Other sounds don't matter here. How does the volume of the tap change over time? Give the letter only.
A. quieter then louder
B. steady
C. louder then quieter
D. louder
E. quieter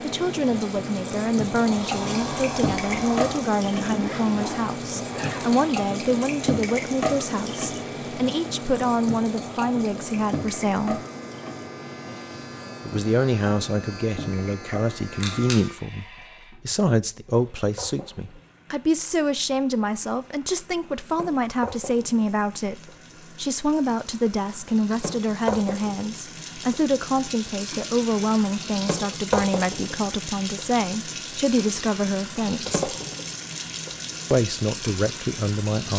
A.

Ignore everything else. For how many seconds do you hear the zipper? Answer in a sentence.
The zipper can be heard for 2 seconds in total.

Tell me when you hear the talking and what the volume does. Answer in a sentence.
The talking can be heard from 0.0 to 11.0 s, at a steady volume; from 12.8 to 32.8 s, at a steady volume; and briefly from 34.3 to 35.9 s.